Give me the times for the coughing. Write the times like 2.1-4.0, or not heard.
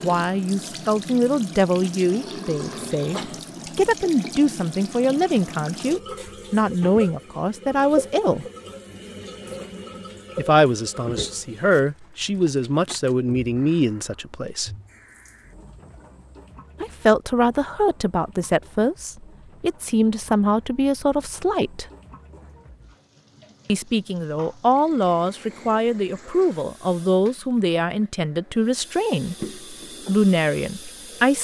2.6-3.4.